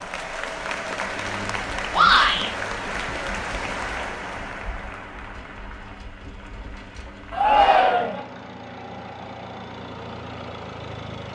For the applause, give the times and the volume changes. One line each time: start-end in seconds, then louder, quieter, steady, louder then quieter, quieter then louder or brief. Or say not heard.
0.0-11.3 quieter.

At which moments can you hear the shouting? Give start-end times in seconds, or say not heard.
1.9-2.5, 7.3-8.2.